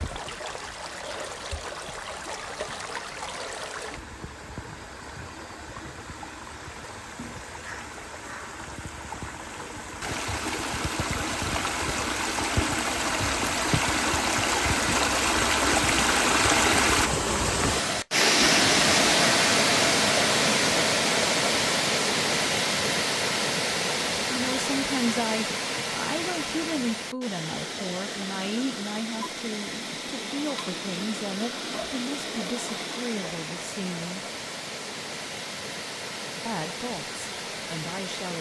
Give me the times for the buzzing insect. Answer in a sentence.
You can't hear the buzzing insect here.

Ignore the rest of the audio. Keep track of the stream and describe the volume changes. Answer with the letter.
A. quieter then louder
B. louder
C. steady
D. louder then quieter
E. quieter
D.